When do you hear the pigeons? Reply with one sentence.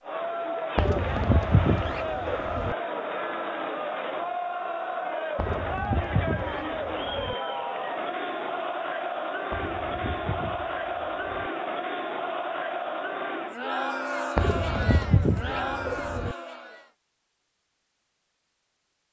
You can hear the pigeons from 0.8 to 2.8 s, from 5.3 to 7.3 s, from 9.5 to 11.5 s and from 14.3 to 16.4 s.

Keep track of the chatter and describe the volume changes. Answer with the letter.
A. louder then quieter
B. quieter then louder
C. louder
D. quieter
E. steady
E.